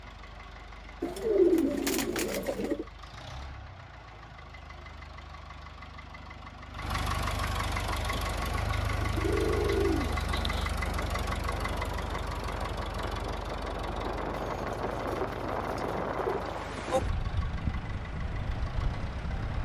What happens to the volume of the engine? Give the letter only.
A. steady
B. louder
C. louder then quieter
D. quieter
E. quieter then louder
C.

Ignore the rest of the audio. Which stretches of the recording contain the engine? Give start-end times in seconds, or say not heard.
0.0-19.6.